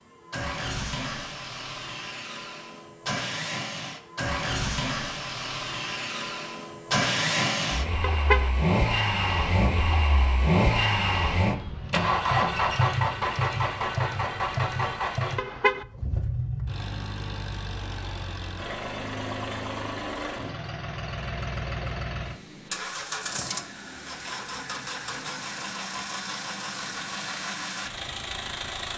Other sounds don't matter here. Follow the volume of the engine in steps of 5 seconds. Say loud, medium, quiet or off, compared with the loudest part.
medium, loud, loud, medium, medium, medium.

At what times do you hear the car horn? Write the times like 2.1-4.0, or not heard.
8.0-8.5, 15.3-15.8.